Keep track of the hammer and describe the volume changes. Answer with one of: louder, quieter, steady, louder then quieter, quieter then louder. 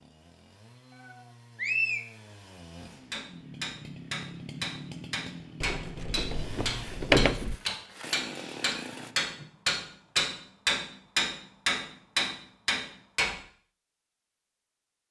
louder.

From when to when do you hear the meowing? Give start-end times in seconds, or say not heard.
0.9-2.0, 8.3-9.4.